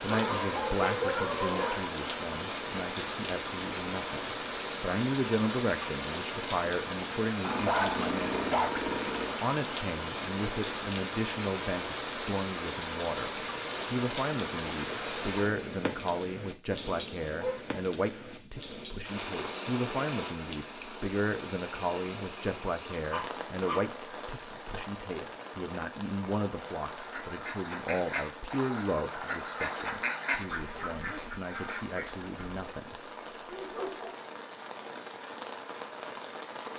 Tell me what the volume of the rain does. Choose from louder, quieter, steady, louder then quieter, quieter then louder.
quieter.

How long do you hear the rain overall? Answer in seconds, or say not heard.
37 s.